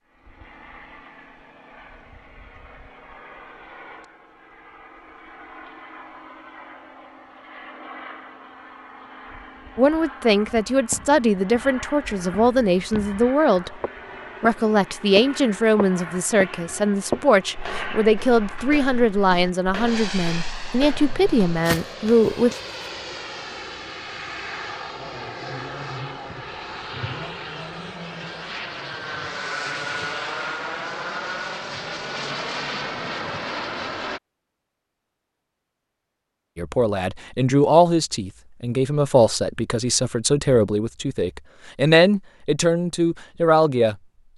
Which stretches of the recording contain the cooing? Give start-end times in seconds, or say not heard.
not heard.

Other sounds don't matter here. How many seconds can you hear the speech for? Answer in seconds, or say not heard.
20 s.